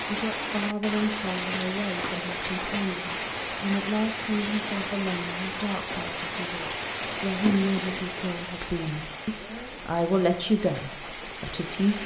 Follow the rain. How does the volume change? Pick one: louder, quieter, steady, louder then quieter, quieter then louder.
quieter.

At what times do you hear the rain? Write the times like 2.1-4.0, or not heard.
0.0-12.0.